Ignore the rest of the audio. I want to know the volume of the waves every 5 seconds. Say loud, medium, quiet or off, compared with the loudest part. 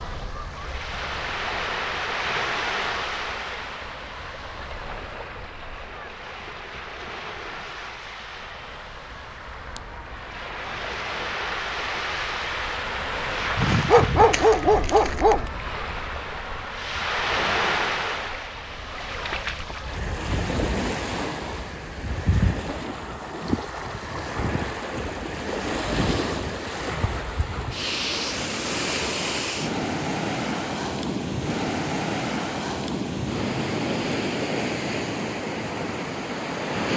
loud, medium, loud, loud, loud, loud, loud, loud.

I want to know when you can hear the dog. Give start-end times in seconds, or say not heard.
13.6-15.4.